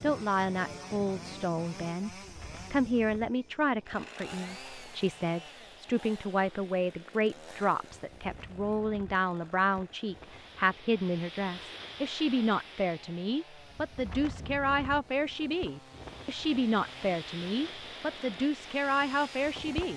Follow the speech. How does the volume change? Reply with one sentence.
The volume of the speech stays about the same.